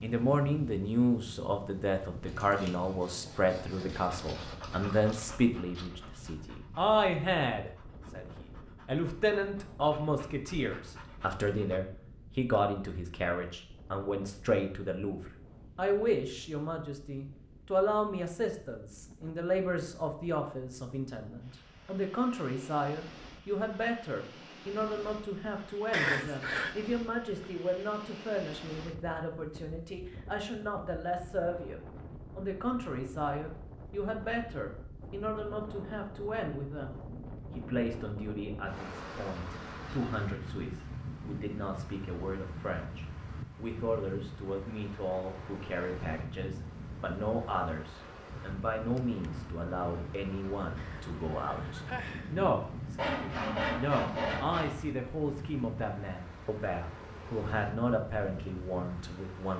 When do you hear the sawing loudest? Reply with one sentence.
The volume of the sawing peaks at 54 seconds.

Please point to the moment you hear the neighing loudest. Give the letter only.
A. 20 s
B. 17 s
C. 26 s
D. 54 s
C.